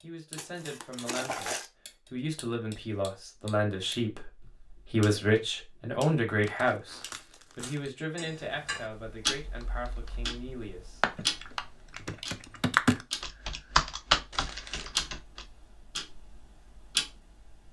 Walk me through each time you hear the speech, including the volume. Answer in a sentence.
The speech can be heard from 0.0 to 11.0 s, getting louder then quieter.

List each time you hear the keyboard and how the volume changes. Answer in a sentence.
The keyboard can be heard from 9.4 to 15.4 s, getting louder.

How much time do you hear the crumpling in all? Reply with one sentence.
You can hear the crumpling for 3 seconds altogether.